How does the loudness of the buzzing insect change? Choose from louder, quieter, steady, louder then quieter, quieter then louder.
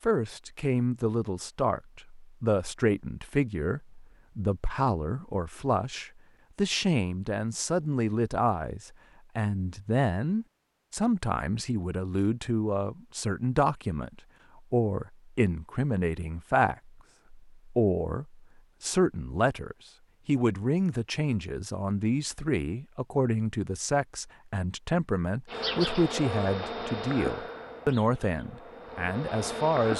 quieter then louder.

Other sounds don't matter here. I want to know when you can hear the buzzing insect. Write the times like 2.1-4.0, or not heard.
25.4-29.9.